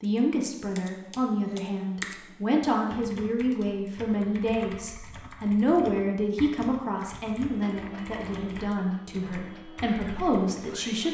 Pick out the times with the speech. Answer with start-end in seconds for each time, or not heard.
0.0-11.0.